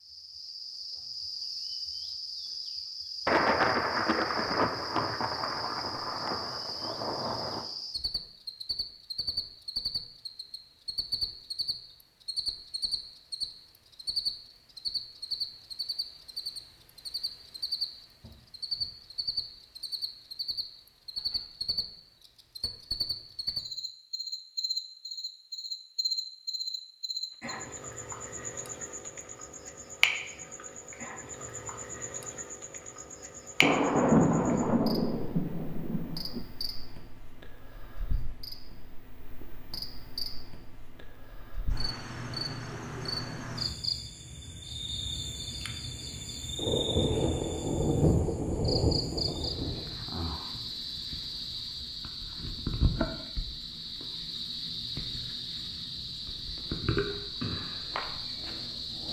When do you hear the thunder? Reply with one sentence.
The thunder can be heard from 3.2 to 7.7 s, from 33.6 to 36.5 s and from 46.5 to 50.0 s.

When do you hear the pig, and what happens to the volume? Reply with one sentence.
You can't hear the pig here.